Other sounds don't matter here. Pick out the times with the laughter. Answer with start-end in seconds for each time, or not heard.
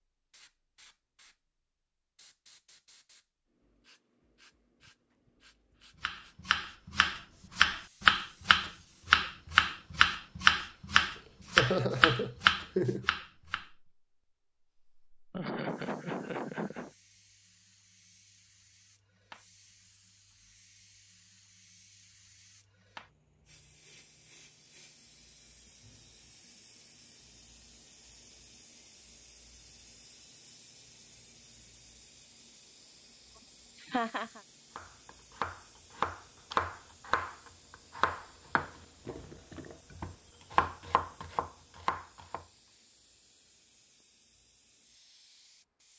11.2-13.1, 15.3-16.9, 33.8-34.4.